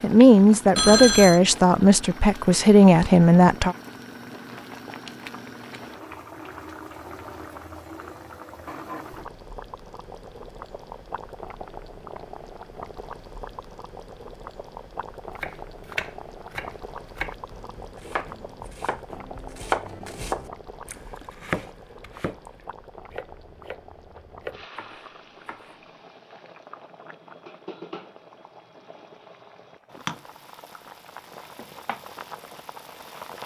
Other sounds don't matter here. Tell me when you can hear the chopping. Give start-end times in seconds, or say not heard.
15.3-25.8.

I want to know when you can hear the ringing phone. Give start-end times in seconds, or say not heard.
0.8-1.4.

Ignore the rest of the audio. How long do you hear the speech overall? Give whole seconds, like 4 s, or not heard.
4 s.